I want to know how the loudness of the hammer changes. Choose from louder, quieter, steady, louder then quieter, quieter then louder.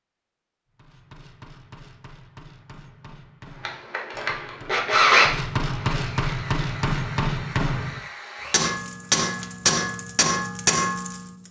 louder.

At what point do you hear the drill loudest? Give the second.
5 s.